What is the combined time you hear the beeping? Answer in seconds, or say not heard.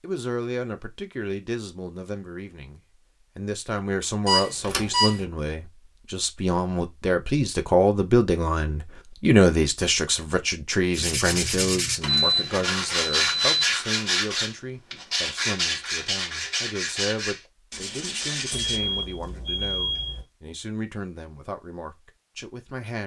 4 s.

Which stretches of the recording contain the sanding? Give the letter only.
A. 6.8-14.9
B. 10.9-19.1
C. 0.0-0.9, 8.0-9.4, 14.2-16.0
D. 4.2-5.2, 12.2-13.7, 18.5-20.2
B.